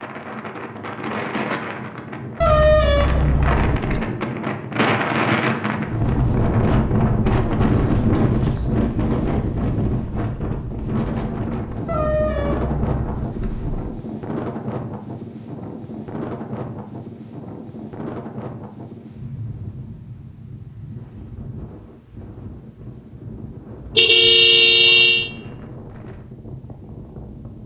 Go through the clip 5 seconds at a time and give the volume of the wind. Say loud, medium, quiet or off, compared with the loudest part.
medium, loud, medium, quiet, quiet, quiet.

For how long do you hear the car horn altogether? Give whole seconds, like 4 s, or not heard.
5 s.